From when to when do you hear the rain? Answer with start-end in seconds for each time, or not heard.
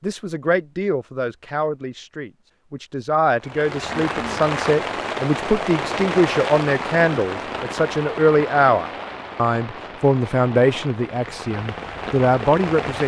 3.4-13.0.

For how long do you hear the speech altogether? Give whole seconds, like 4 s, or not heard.
13 s.